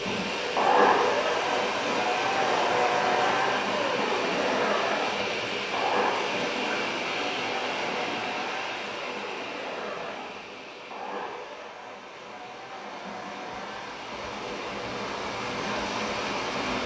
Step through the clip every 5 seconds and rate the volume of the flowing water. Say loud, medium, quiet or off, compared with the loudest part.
loud, loud, medium, loud.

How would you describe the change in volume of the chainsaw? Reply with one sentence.
The volume of the chainsaw goes down.